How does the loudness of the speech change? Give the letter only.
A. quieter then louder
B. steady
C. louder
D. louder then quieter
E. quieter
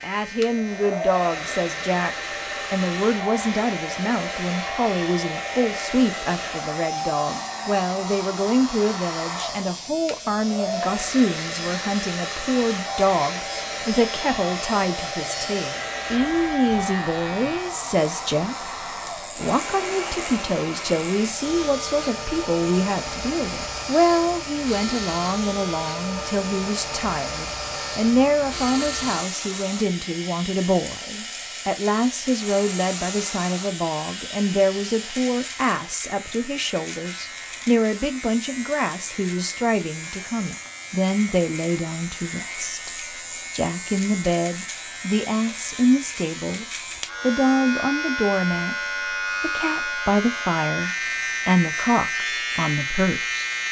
B.